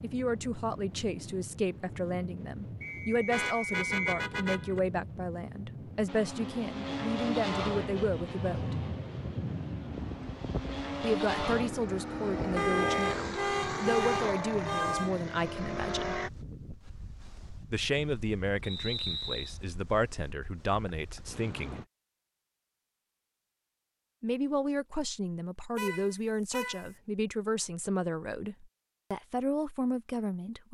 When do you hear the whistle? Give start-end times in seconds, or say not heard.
2.8-4.2, 18.6-19.6.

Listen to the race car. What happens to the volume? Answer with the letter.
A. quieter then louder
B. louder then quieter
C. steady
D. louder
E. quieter
A.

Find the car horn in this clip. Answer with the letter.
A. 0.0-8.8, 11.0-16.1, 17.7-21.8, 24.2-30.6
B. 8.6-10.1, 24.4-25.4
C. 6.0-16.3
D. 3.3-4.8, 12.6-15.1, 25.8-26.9
D.